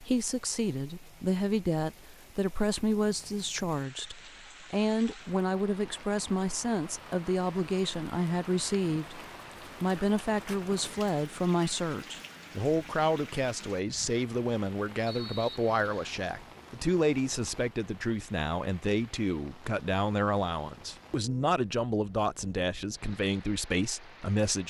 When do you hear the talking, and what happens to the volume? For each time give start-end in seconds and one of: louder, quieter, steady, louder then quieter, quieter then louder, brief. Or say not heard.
0.0-9.2 steady
9.8-24.6 steady.